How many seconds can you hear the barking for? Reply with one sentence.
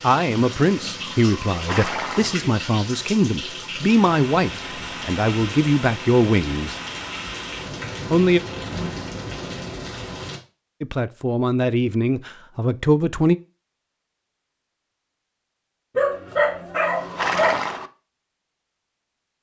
You can hear the barking for 2 seconds altogether.